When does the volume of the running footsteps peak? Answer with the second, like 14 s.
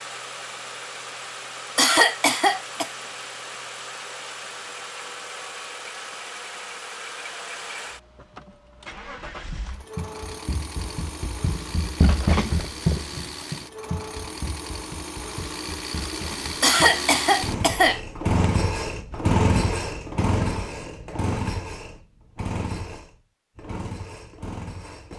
12 s.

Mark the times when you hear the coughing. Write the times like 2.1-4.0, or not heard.
1.8-2.9, 16.6-18.0.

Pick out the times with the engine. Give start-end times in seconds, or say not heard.
0.0-25.1.